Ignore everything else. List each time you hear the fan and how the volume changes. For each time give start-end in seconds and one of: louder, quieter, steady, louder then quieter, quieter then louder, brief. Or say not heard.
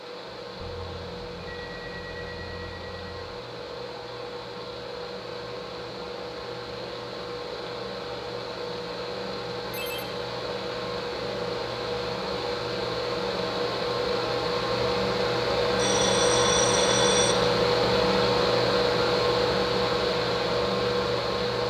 0.0-21.6 louder.